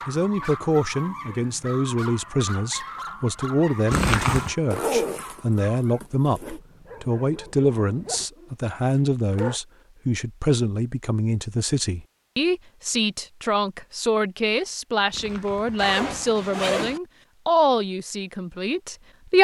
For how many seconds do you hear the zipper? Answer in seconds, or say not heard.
3 s.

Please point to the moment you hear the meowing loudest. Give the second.
4 s.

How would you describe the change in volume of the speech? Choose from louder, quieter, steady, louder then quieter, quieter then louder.
steady.